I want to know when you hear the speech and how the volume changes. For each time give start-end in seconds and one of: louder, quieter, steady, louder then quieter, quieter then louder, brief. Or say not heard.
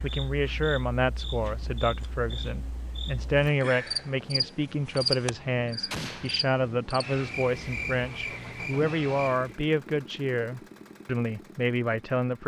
0.0-12.4 steady.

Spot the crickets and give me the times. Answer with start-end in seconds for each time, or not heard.
0.0-9.6.